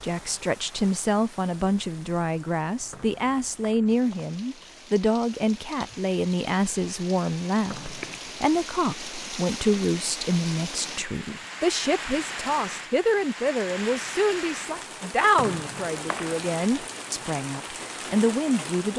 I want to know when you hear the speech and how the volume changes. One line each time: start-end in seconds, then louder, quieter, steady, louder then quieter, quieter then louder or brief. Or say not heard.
0.0-18.9 steady.